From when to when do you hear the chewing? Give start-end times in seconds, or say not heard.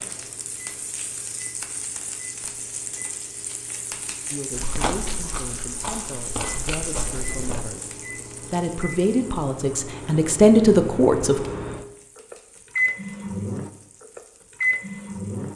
4.5-7.7.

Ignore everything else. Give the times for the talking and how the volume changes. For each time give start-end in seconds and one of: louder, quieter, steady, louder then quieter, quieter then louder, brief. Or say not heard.
4.3-11.4 louder.